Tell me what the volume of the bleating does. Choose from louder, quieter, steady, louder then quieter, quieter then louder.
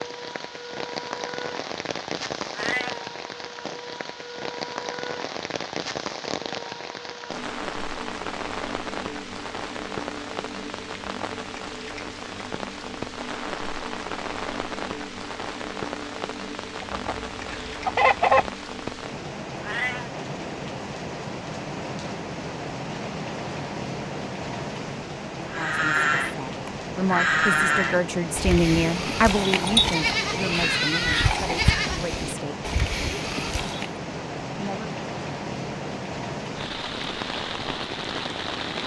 quieter.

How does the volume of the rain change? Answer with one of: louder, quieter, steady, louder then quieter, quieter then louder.
steady.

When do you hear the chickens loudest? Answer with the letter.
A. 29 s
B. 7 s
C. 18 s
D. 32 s
C.